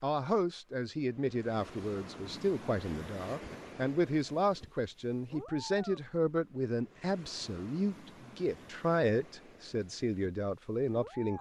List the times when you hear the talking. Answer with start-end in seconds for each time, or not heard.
0.0-11.3.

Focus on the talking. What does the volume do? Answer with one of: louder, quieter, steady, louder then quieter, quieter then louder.
steady.